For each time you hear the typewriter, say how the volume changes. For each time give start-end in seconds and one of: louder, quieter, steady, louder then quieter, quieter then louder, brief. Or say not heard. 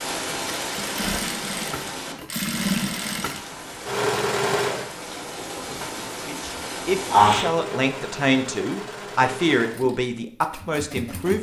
not heard.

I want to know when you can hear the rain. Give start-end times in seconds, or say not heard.
0.0-7.5.